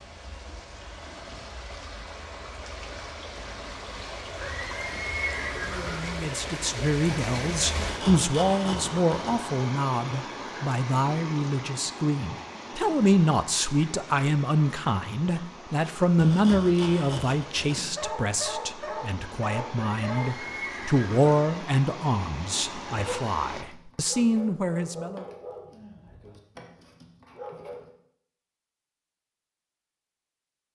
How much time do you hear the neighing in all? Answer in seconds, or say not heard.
3 s.